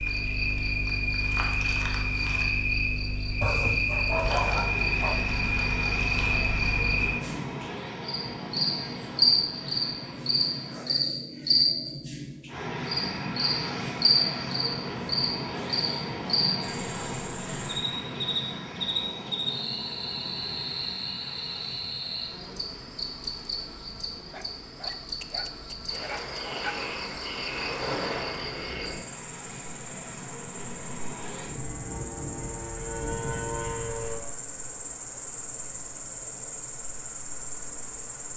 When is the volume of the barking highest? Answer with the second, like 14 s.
4 s.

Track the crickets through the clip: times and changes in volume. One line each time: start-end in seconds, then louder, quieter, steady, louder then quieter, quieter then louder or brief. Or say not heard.
0.0-38.3 quieter.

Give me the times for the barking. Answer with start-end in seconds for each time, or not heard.
3.4-5.2, 24.3-26.8.